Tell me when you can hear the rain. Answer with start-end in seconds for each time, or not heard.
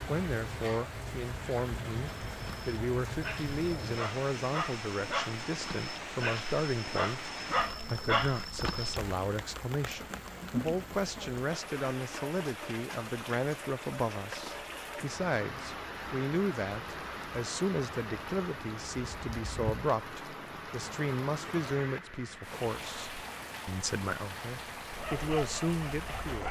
0.0-26.4.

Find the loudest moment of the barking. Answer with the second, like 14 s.
8 s.